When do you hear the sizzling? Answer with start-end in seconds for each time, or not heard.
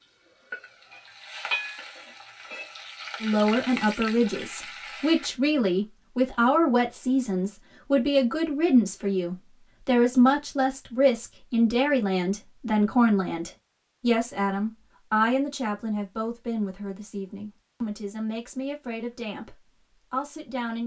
0.5-5.3.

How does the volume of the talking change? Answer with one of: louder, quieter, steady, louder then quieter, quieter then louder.
quieter.